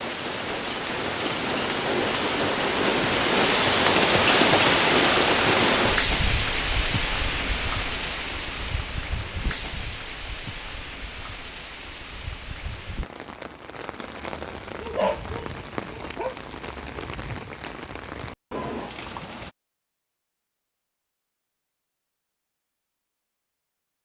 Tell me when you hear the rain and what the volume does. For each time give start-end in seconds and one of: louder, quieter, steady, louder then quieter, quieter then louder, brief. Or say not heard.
0.0-19.6 quieter.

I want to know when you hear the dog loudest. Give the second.
15 s.